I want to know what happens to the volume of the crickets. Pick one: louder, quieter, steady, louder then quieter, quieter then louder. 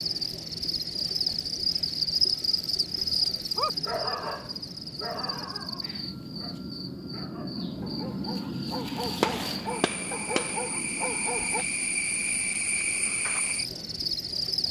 quieter then louder.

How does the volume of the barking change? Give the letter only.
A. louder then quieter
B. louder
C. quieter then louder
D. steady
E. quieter
C.